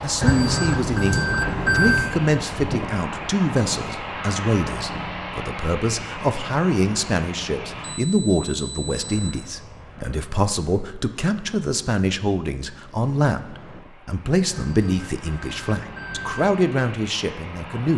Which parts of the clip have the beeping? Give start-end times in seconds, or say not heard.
0.2-2.1, 7.8-9.3, 14.5-16.5.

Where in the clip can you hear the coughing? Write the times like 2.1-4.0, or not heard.
not heard.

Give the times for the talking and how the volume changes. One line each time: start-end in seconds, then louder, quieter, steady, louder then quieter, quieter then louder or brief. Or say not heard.
0.0-17.9 steady.